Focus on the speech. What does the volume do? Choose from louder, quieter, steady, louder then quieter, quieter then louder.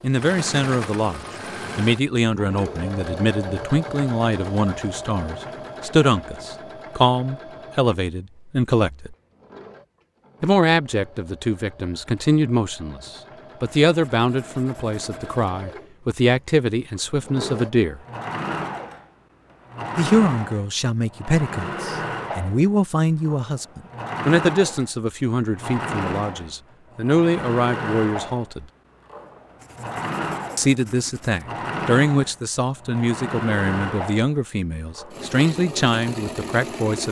steady.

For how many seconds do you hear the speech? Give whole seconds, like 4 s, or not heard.
32 s.